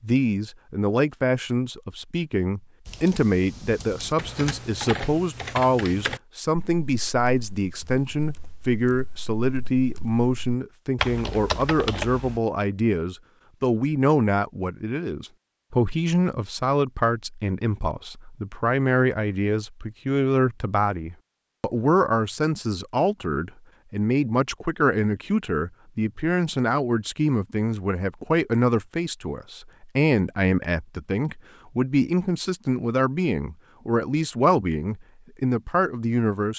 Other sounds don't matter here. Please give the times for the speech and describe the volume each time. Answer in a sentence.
The speech can be heard from 0.0 to 36.5 s, at a steady volume.